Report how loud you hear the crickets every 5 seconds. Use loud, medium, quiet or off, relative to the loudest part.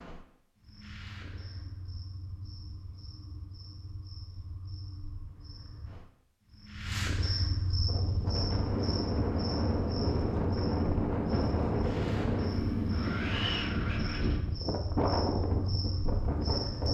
quiet, loud, medium, loud.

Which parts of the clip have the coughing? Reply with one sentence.
The coughing can't be heard in this clip.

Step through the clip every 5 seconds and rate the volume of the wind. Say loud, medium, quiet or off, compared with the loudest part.
off, loud, loud, loud.